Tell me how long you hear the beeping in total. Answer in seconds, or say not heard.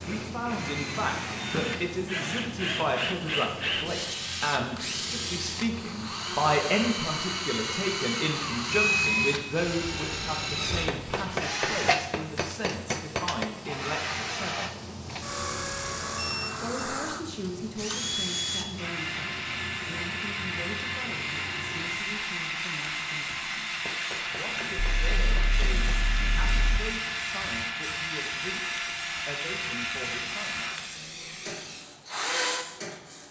3 s.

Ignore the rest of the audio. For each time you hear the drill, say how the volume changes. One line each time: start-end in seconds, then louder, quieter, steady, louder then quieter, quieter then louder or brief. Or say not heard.
0.0-33.2 steady.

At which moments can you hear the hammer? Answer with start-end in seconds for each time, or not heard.
10.8-13.5, 23.9-26.1.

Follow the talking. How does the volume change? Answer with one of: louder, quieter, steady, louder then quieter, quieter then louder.
quieter.